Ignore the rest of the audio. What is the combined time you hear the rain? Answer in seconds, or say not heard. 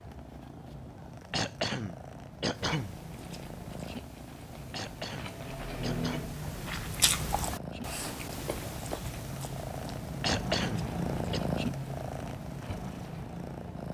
not heard.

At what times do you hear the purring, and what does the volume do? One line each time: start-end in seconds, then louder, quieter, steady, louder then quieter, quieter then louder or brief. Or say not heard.
0.0-13.8 louder.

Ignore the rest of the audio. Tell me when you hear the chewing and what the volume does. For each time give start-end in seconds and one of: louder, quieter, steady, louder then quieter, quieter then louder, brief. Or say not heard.
2.6-13.3 louder then quieter.